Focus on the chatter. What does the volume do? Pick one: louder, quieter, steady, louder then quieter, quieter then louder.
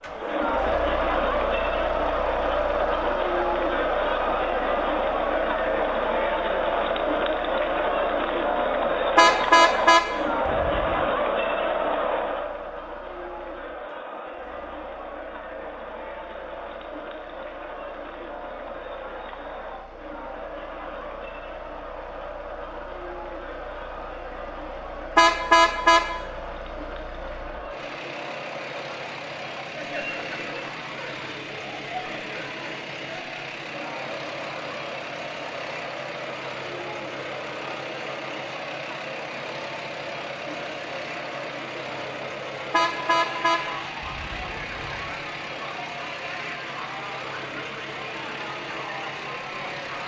quieter.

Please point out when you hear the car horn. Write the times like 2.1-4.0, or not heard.
9.2-11.1, 25.1-26.1, 42.7-45.0.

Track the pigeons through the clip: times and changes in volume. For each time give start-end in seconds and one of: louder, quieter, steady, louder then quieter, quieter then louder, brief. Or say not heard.
not heard.